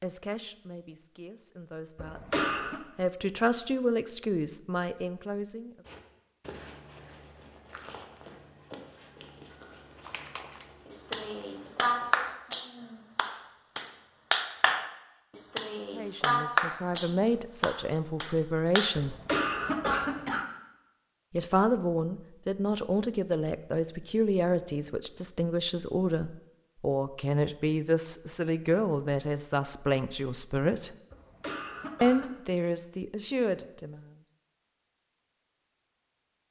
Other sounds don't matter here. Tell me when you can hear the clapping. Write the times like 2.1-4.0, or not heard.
10.1-18.9.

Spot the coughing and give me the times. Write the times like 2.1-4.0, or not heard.
1.9-2.8, 18.9-20.4, 31.1-32.4.